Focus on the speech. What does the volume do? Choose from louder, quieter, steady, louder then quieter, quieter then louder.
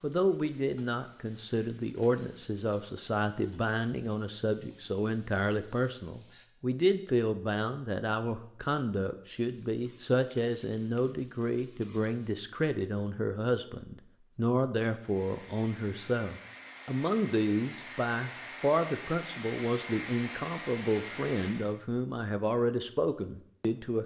steady.